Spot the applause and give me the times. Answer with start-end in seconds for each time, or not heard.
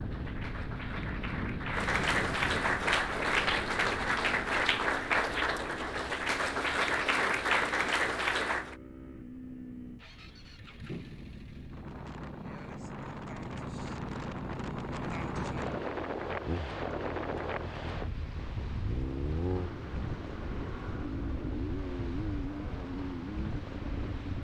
0.0-8.8.